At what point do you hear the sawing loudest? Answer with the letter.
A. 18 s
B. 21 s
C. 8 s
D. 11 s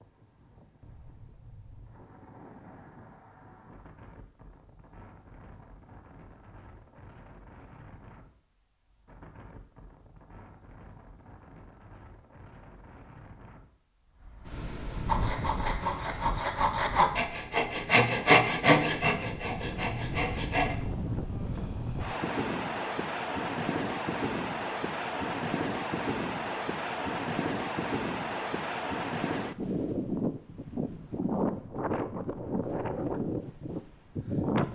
A.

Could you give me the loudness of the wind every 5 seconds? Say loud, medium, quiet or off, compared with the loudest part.
quiet, quiet, quiet, medium, loud, loud, loud.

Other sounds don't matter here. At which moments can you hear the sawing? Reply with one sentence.
You can hear the sawing from 15.1 to 20.8 s.